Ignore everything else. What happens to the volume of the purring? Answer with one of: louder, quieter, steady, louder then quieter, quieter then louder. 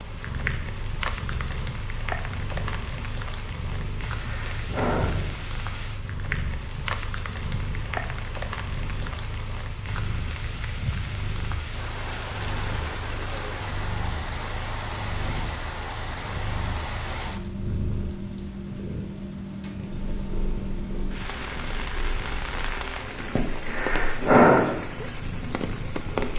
steady.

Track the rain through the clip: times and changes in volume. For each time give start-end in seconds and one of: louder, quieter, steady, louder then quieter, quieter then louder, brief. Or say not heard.
0.0-26.3 steady.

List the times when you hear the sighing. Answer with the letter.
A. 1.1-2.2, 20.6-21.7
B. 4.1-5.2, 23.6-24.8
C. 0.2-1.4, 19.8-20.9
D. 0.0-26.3
B.